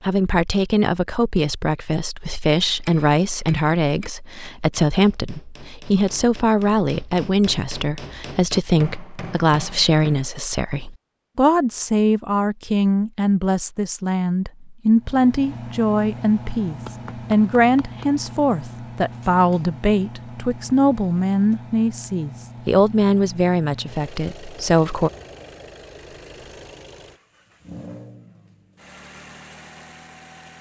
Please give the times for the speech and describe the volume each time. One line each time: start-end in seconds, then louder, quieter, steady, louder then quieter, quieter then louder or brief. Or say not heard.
0.0-25.1 steady.